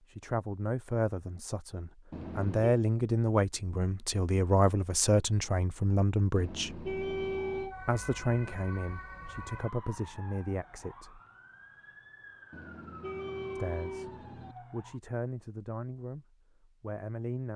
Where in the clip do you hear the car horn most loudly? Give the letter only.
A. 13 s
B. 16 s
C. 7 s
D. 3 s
C.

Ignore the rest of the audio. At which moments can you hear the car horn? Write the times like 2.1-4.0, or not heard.
2.1-2.8, 6.3-7.8, 12.5-14.6.